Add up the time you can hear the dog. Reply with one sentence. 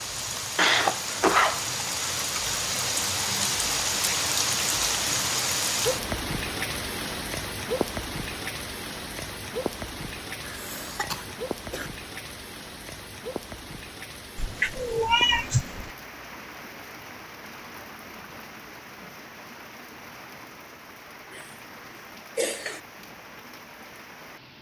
You can't hear the dog here.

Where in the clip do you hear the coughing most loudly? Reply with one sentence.
The loudest moment of the coughing is at 1 second.